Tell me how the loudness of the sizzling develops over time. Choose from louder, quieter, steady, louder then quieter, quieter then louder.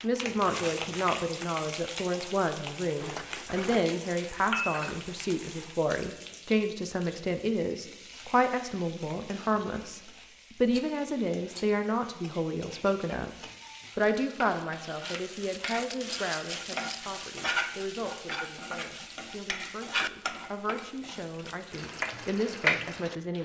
quieter then louder.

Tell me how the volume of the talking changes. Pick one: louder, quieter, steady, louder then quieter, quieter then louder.
quieter.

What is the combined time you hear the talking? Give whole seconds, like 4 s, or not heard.
23 s.